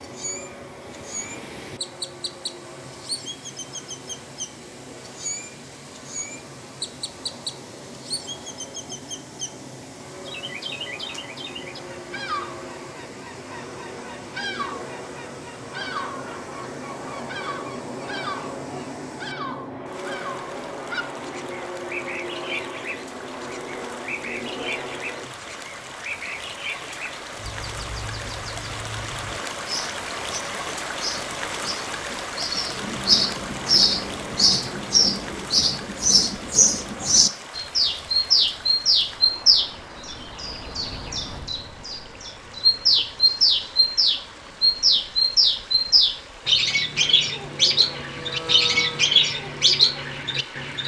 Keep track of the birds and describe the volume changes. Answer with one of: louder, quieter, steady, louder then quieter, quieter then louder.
louder.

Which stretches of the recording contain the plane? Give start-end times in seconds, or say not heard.
0.0-25.3, 47.5-50.7.